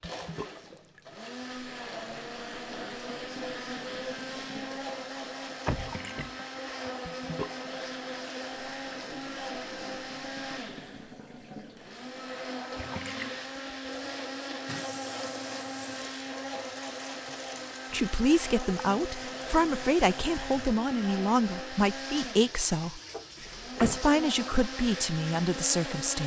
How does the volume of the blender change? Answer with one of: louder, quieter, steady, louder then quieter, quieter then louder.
steady.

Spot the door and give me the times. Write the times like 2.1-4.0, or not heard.
5.7-6.9, 23.1-24.0.